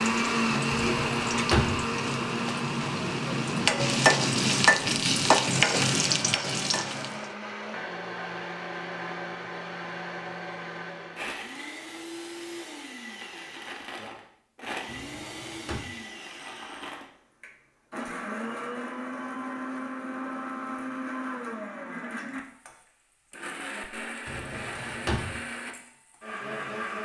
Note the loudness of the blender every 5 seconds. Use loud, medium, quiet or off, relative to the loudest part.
loud, medium, medium, medium, medium, medium.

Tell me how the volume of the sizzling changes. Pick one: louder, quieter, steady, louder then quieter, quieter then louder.
louder.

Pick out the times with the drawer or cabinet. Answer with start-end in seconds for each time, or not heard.
0.8-1.9, 14.8-15.9, 24.2-25.4.